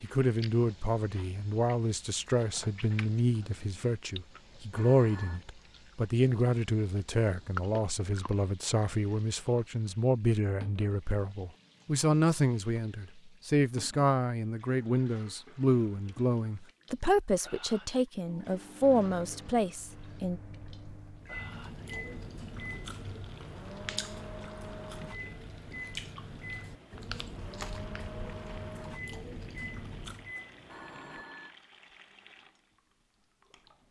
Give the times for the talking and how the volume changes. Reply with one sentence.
The talking can be heard from 0.0 to 20.4 s, at a steady volume.